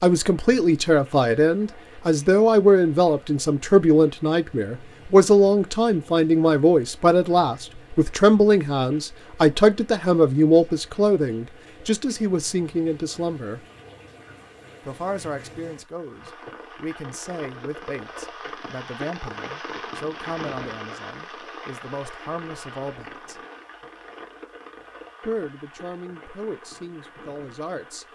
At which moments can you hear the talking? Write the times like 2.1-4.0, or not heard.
0.0-13.6, 14.8-23.4, 25.2-28.1.